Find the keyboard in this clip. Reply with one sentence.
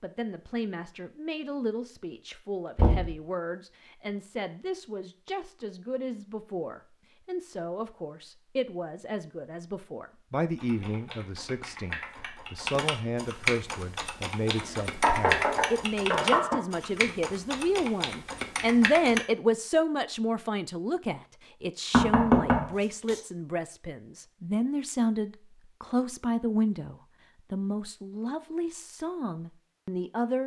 You can hear the keyboard from 10.6 to 19.2 s.